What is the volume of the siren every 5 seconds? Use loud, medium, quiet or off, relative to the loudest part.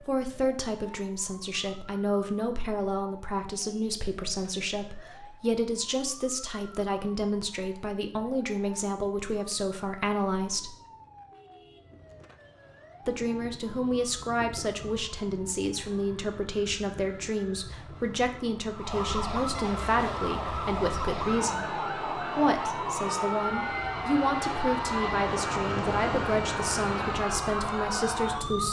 quiet, quiet, quiet, medium, loud, loud.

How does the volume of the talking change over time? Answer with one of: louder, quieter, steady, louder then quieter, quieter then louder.
steady.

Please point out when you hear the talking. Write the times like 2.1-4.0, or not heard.
0.0-10.8, 13.1-28.6.